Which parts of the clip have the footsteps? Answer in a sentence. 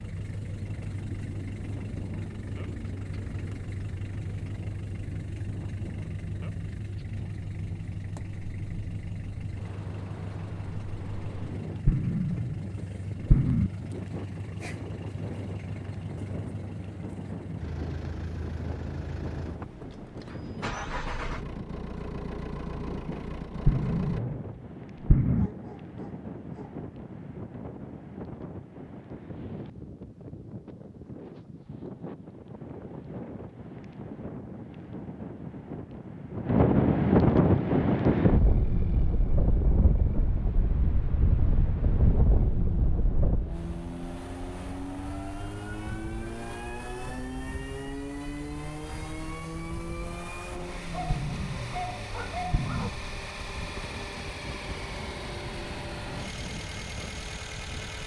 You can't hear the footsteps here.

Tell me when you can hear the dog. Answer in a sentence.
The dog can be heard from 25.4 to 26.8 s and from 50.9 to 52.9 s.